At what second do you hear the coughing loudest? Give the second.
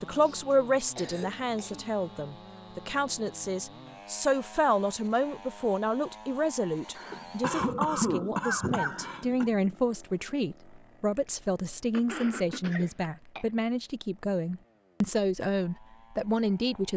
8 s.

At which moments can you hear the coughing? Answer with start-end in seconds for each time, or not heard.
0.1-1.9, 7.0-9.5, 11.9-13.4.